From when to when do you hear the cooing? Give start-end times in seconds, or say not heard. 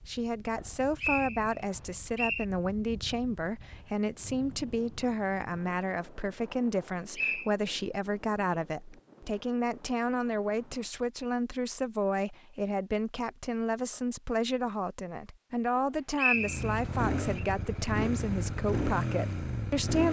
not heard.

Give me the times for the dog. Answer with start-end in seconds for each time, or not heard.
not heard.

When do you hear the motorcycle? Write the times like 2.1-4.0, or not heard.
16.4-20.0.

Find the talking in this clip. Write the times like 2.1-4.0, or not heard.
0.0-20.0.